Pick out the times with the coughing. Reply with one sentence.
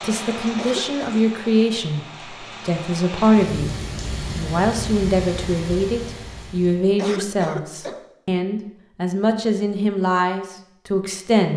You can hear the coughing from 0.4 to 1.2 s and from 6.8 to 8.1 s.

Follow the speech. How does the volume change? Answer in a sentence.
The loudness of the speech stays about the same.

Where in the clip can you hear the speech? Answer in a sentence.
You can hear the speech from 0.0 to 11.5 s.